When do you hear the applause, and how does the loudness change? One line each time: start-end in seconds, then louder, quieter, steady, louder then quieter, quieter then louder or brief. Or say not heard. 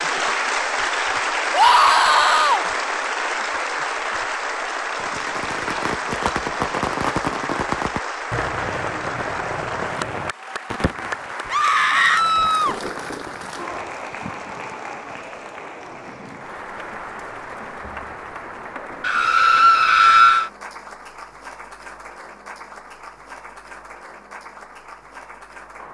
0.0-25.8 quieter.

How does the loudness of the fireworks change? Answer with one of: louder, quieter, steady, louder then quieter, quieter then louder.
quieter.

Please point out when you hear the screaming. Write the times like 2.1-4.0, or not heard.
1.5-2.6, 11.5-12.8, 19.0-20.5.